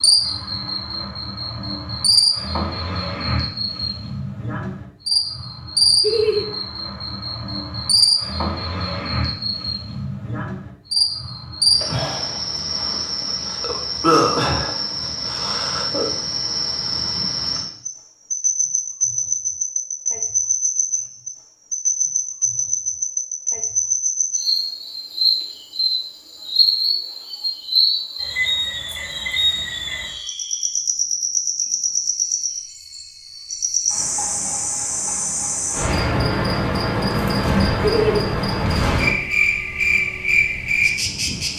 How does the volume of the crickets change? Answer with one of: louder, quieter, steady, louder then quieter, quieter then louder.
steady.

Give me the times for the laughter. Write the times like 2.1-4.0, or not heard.
6.0-6.5, 37.8-38.2.